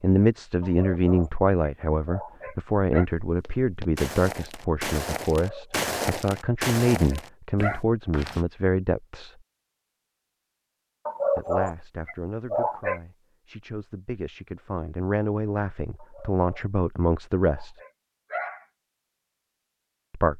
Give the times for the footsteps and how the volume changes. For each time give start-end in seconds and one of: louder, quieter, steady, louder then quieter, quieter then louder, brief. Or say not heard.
3.2-8.4 louder then quieter.